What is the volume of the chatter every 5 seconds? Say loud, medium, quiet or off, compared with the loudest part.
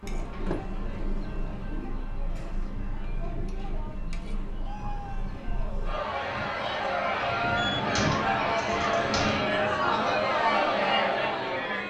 quiet, loud, loud.